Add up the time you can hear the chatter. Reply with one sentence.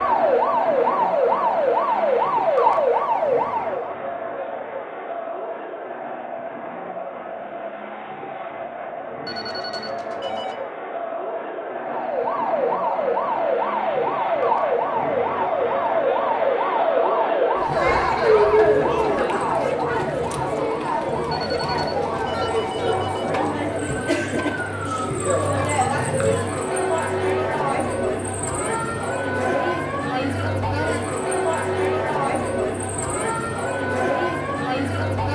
The chatter can be heard for 35 seconds in total.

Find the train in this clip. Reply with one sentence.
The train can't be heard in this clip.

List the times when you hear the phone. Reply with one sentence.
The phone can be heard from 9.2 to 10.6 s and from 21.3 to 23.3 s.